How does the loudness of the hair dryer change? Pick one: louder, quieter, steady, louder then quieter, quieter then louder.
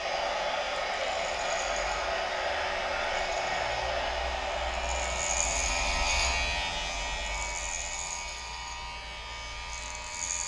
quieter.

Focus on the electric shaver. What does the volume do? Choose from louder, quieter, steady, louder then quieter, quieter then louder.
louder then quieter.